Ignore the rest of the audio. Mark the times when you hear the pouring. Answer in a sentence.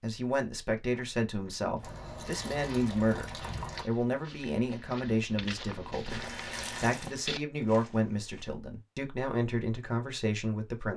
The pouring can be heard from 1.8 to 3.9 s and from 6.0 to 7.1 s.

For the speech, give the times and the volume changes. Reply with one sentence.
The speech can be heard from 0.0 to 10.9 s, at a steady volume.